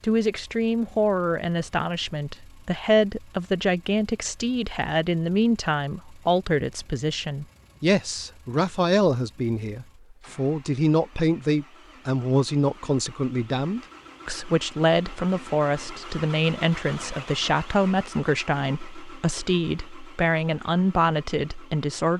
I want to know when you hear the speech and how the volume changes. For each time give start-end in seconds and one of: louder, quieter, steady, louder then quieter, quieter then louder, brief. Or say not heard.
0.0-22.1 steady.